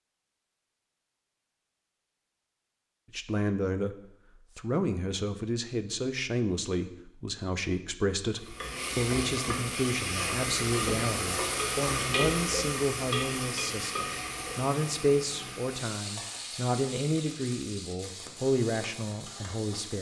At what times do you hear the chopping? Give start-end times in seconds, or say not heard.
not heard.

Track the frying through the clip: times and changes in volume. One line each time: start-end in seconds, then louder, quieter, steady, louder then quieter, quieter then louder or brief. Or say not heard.
8.3-19.9 quieter.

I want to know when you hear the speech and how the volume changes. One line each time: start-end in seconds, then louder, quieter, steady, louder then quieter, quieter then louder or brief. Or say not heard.
3.1-4.0 brief
4.5-19.9 steady.